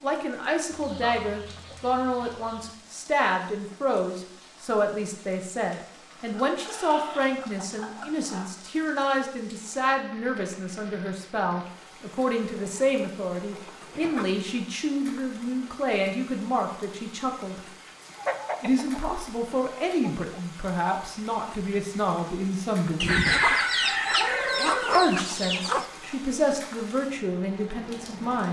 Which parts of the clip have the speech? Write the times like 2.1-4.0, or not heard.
0.0-17.6, 18.6-23.4, 24.9-28.4.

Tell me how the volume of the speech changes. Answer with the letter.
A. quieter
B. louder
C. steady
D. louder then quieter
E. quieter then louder
C.